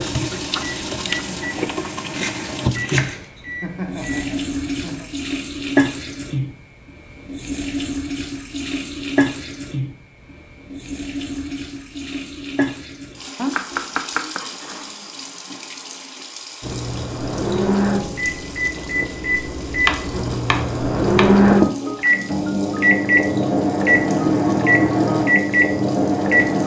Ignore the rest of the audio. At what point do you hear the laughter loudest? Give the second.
4 s.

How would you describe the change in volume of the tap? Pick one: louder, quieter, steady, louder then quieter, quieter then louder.
quieter.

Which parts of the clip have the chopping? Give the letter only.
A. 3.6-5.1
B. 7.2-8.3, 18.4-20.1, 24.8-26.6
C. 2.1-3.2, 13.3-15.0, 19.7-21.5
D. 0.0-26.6
C.